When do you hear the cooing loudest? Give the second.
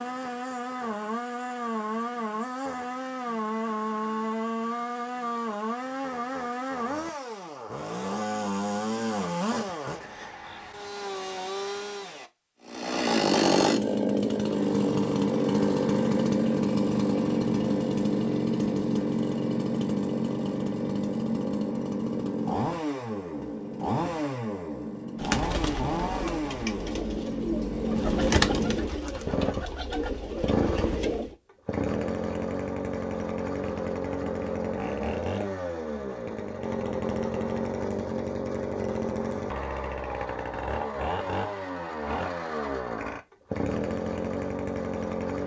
28 s.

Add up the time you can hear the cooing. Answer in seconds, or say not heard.
6 s.